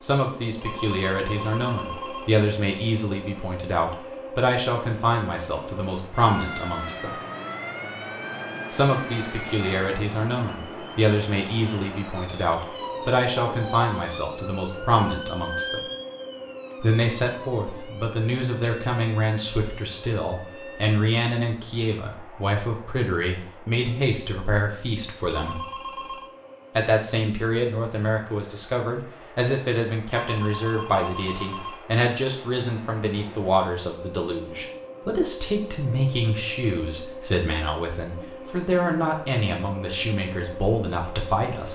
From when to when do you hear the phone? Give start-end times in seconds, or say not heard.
0.6-2.3, 25.3-26.3, 30.1-31.8.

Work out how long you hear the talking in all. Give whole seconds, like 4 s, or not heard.
38 s.